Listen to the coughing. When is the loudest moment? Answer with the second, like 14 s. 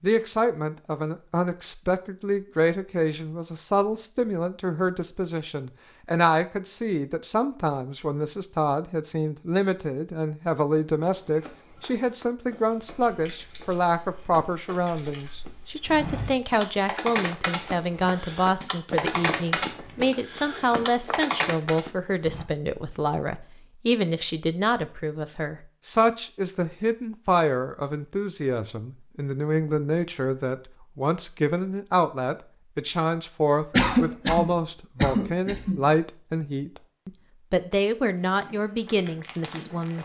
34 s.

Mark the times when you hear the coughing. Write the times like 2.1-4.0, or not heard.
33.7-35.9.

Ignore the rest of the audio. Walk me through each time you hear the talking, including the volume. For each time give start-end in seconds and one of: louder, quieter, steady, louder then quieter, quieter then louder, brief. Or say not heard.
0.0-40.0 steady.